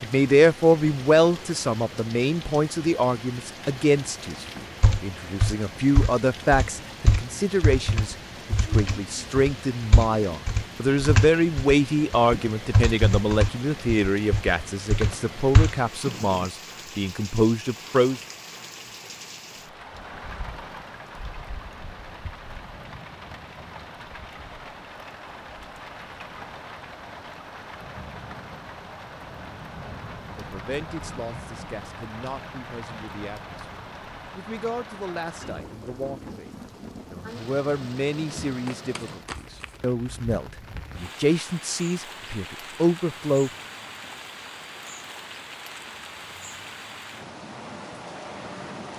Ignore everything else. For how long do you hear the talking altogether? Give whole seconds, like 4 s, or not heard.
31 s.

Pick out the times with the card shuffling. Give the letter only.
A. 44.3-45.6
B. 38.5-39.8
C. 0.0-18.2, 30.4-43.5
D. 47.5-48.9
B.